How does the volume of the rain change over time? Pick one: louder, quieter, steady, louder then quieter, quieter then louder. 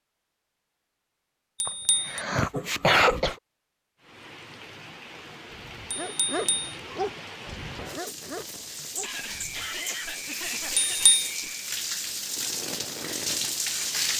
louder.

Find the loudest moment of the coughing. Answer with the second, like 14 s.
3 s.